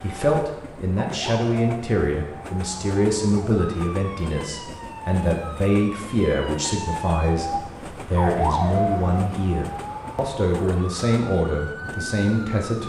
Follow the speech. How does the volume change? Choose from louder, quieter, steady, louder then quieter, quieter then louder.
steady.